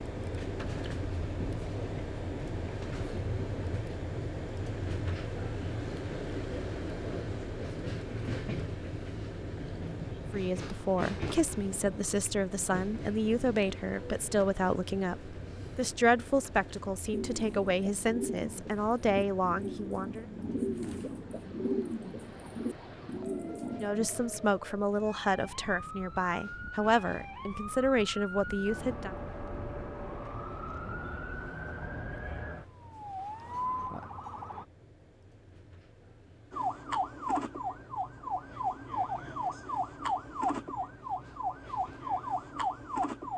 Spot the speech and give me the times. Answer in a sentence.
The speech can be heard from 10.3 to 20.2 s and from 23.8 to 29.1 s.